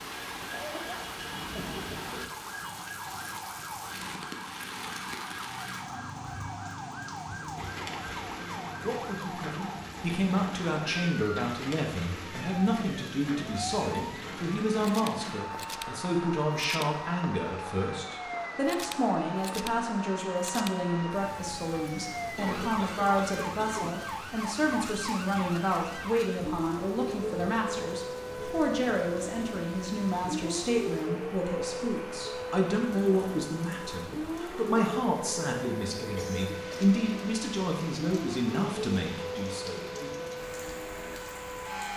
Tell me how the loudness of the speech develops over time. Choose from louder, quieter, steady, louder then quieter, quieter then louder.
steady.